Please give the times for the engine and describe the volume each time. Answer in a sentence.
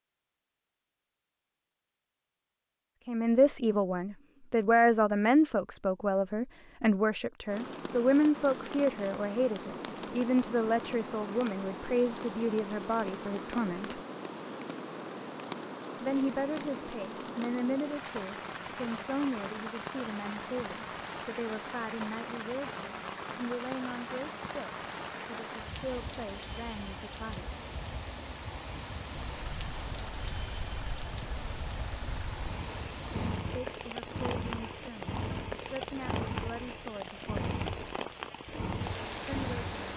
You can hear the engine from 29.1 to 39.9 s, getting louder.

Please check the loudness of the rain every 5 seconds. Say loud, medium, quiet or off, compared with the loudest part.
off, loud, loud, loud, loud, loud, loud, loud.